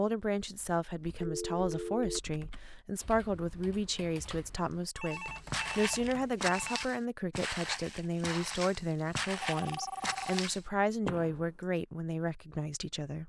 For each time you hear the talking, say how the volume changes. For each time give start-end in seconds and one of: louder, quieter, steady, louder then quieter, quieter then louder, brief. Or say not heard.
0.0-13.2 steady.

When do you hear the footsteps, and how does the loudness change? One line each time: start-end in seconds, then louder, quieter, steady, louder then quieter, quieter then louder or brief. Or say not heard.
5.1-11.4 steady.